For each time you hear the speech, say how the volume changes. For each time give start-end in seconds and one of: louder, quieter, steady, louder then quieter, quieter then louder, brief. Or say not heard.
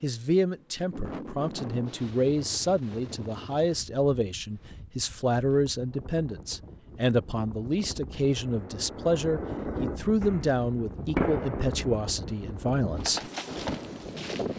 0.0-13.2 steady.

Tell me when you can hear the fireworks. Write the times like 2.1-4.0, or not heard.
8.2-14.2.